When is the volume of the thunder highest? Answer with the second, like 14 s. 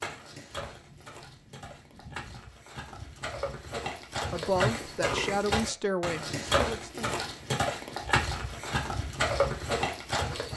2 s.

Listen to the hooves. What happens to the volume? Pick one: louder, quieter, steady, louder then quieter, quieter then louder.
louder.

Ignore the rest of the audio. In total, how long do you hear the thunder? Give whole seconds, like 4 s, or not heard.
2 s.